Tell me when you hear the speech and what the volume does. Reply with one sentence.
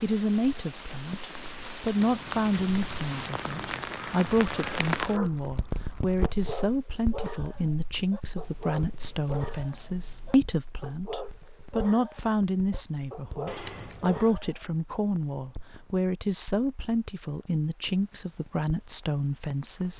The speech can be heard from 0.0 to 19.9 s, at a steady volume.